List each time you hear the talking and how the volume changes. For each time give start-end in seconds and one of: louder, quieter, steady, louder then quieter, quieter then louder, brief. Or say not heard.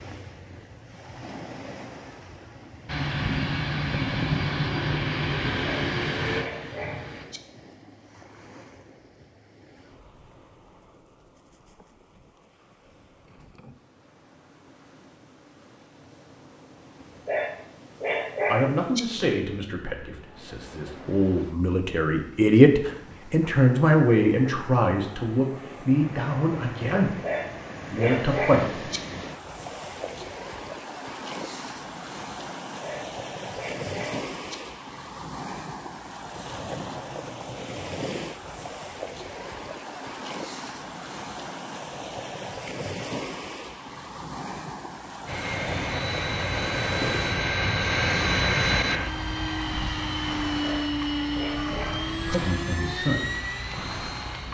18.4-27.1 louder then quieter
27.9-28.8 brief
52.2-53.4 brief.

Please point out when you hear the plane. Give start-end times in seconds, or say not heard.
2.9-7.2, 45.2-54.4.